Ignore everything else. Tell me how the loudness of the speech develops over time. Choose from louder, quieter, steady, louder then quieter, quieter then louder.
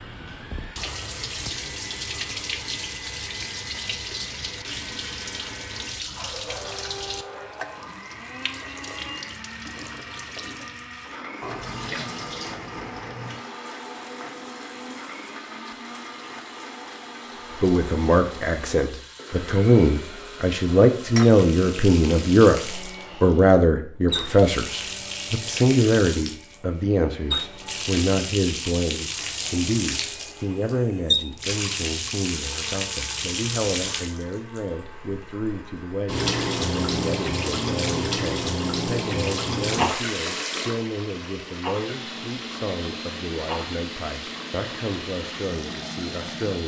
quieter.